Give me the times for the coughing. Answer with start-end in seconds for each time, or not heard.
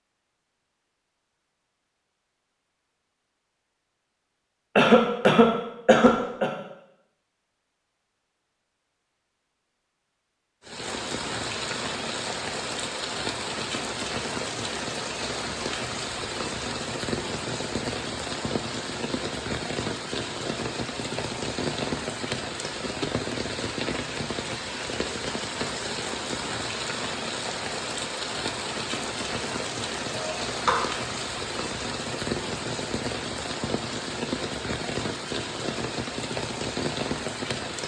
4.8-6.5, 30.1-30.9.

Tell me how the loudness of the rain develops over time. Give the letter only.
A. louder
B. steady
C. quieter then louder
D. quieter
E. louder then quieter
B.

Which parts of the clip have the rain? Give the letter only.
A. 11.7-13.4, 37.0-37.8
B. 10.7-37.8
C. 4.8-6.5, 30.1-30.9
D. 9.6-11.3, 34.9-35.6
B.